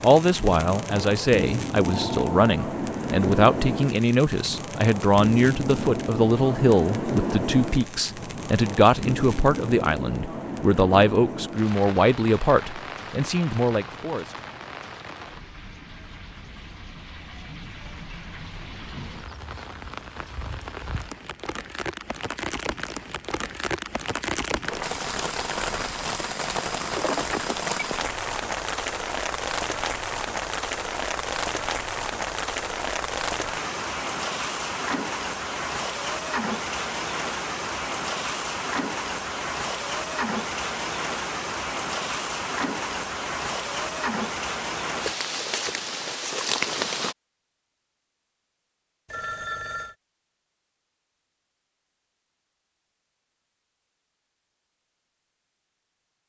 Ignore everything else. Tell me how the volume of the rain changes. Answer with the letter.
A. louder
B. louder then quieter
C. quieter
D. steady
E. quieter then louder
E.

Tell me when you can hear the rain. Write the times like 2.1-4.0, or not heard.
0.0-47.1.